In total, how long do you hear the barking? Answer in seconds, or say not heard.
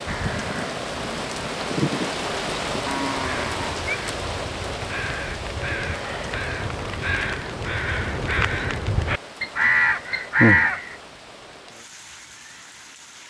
not heard.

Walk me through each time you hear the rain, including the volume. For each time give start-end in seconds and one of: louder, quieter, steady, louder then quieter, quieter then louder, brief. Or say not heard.
0.0-13.2 quieter.